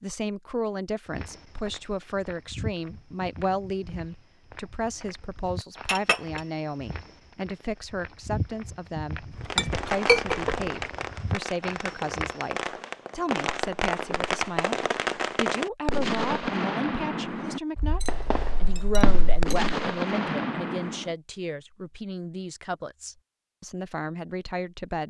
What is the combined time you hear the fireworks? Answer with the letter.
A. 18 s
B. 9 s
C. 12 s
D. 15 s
C.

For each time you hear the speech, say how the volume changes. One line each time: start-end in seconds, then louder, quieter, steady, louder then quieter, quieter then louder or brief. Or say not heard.
0.0-25.0 steady.